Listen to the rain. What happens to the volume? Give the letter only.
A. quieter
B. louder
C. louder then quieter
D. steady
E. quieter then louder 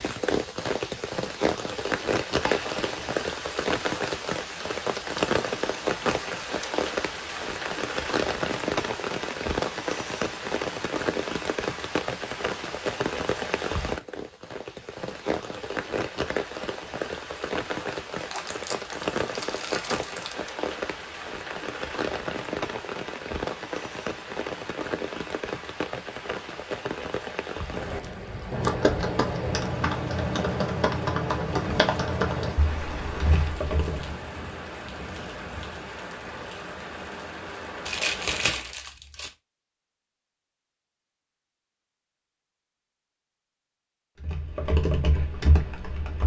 A.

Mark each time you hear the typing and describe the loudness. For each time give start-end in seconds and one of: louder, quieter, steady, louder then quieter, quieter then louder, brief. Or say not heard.
28.0-34.1 quieter
44.2-46.2 brief.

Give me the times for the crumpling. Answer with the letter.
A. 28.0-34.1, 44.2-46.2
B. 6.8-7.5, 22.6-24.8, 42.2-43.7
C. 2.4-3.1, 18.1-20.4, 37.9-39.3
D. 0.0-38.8
C.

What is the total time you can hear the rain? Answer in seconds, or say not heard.
39 s.